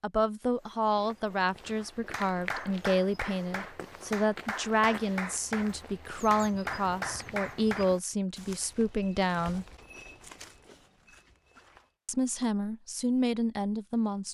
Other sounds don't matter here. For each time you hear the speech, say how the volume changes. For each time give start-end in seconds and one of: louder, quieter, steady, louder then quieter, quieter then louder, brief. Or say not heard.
0.0-9.7 steady
12.1-14.3 brief.